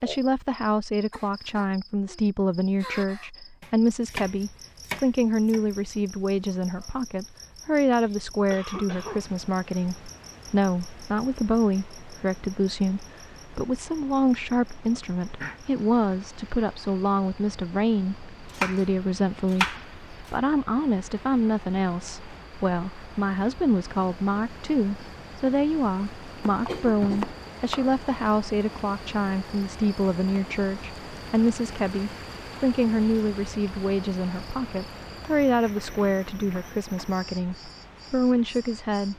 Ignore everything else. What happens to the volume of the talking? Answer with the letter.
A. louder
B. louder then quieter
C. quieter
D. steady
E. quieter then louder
D.